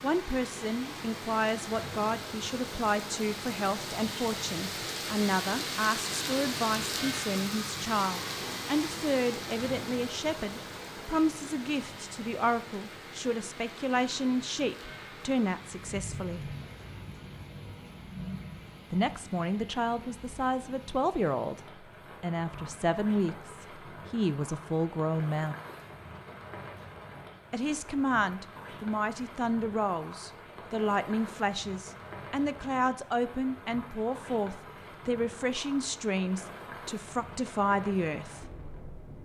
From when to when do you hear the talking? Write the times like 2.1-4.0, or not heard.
0.0-16.6, 18.9-25.6, 27.5-38.4.